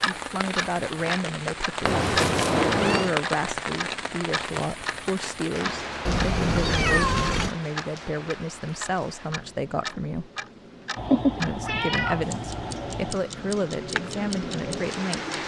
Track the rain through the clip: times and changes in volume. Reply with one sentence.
The rain can be heard from 0.0 to 15.4 s, getting quieter then louder.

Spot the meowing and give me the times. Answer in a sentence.
The meowing can be heard from 1.9 to 3.1 s, from 6.0 to 7.5 s and from 10.9 to 13.2 s.